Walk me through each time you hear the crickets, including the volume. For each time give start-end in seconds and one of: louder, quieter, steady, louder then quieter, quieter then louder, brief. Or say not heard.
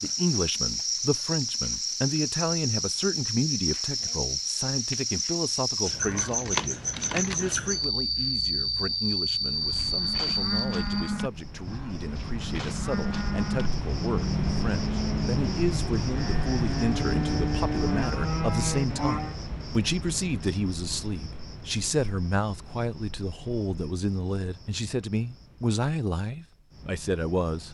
0.0-27.7 quieter.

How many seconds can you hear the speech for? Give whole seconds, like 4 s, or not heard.
28 s.